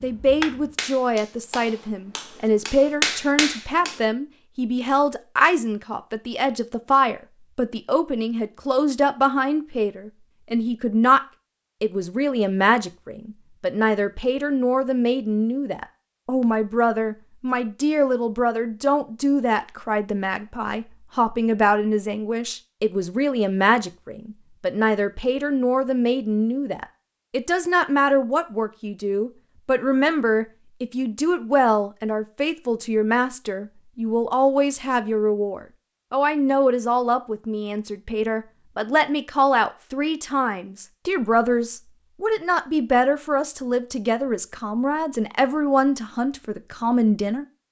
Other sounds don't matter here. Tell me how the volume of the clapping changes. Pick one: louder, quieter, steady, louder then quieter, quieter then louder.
quieter then louder.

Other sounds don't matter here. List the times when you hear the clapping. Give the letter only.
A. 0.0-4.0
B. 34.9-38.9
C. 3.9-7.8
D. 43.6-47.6
A.